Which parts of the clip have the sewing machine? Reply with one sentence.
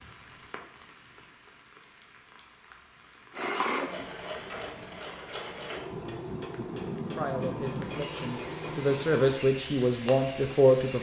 You can hear the sewing machine from 3.4 to 9.4 s.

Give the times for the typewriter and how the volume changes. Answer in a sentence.
The typewriter can't be heard in this clip.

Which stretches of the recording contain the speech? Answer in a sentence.
The speech can be heard from 7.1 to 10.9 s.